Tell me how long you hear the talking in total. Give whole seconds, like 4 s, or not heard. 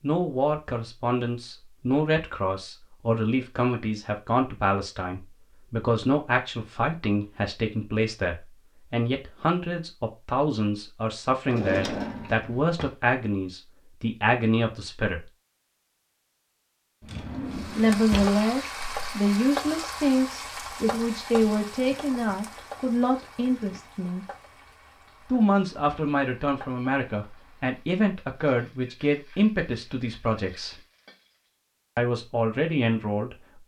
29 s.